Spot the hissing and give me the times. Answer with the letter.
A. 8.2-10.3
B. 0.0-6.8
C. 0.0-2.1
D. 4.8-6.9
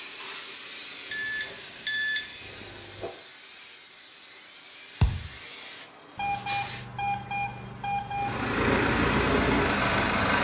B.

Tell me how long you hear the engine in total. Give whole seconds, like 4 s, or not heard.
2 s.